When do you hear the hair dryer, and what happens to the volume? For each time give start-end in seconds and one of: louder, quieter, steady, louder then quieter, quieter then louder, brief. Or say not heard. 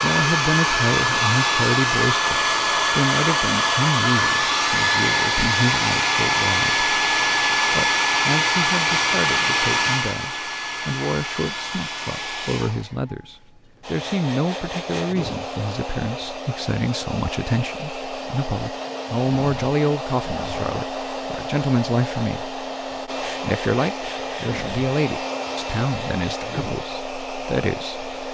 0.0-28.3 quieter.